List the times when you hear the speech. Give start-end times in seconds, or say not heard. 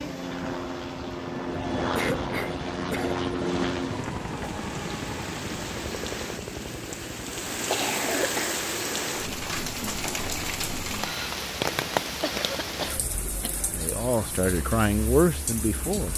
13.7-16.1.